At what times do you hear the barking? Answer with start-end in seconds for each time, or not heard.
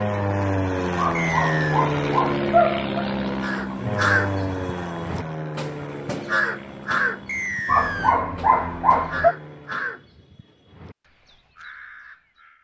0.9-3.0, 7.7-9.3.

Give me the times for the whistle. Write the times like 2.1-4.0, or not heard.
1.1-1.8, 7.2-8.2.